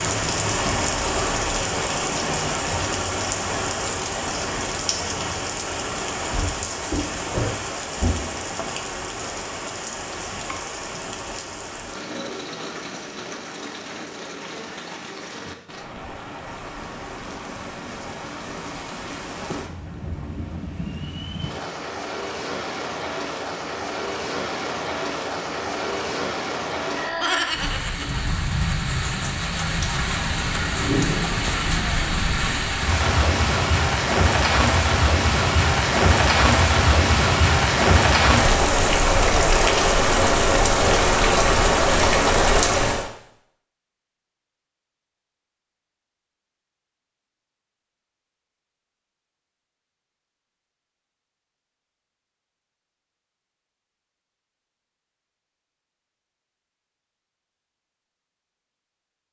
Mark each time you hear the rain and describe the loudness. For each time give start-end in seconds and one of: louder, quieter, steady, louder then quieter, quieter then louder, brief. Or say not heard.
0.0-43.1 quieter then louder.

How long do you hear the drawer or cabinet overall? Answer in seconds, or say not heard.
2 s.